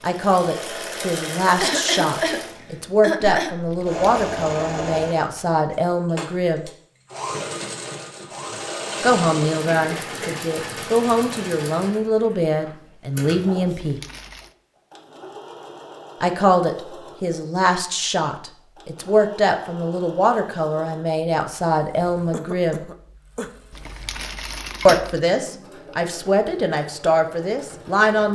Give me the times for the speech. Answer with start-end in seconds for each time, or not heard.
0.0-6.7, 9.0-14.0, 16.2-22.8, 24.9-28.3.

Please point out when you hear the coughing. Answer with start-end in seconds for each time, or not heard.
1.6-3.5, 9.7-10.4, 22.3-23.5.